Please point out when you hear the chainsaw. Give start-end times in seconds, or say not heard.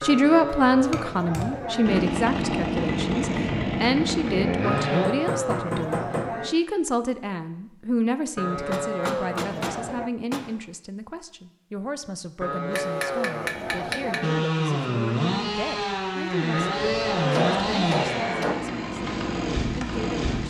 1.9-5.1, 14.2-20.4.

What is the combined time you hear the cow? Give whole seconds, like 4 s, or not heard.
10 s.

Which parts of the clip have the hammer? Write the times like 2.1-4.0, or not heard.
0.5-1.6, 4.8-6.3, 8.5-10.5, 12.7-14.2, 17.1-18.6.